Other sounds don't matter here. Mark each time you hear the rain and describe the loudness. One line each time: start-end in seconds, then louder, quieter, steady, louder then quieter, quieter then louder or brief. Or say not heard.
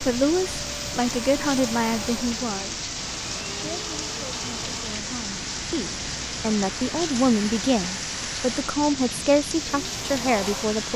0.0-10.9 steady.